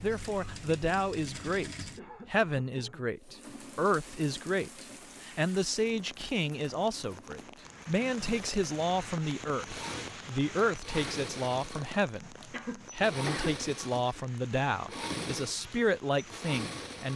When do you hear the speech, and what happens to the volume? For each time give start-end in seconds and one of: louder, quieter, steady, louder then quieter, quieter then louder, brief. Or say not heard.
0.0-17.1 steady.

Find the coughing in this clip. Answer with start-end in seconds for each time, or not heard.
1.9-3.1, 12.5-13.6.